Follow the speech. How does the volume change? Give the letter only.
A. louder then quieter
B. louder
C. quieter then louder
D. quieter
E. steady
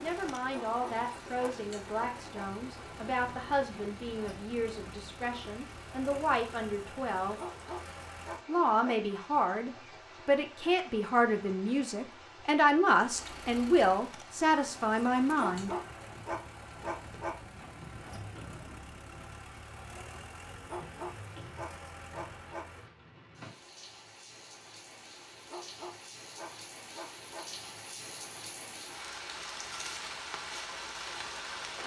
B.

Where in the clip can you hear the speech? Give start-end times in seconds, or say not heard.
0.0-7.4, 8.4-15.7.